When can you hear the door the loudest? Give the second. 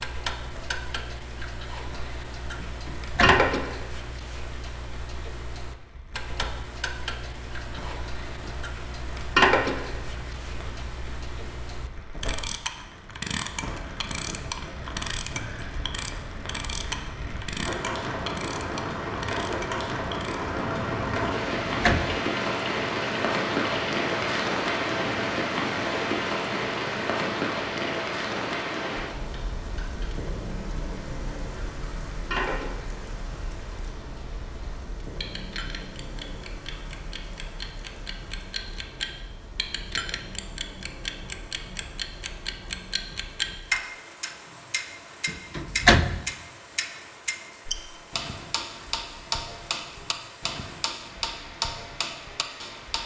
46 s.